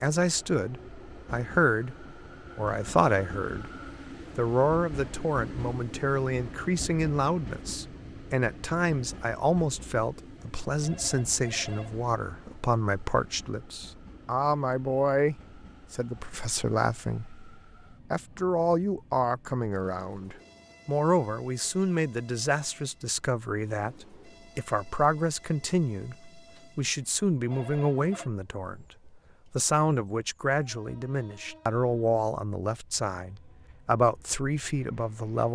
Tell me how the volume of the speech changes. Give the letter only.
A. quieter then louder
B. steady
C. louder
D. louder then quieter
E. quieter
B.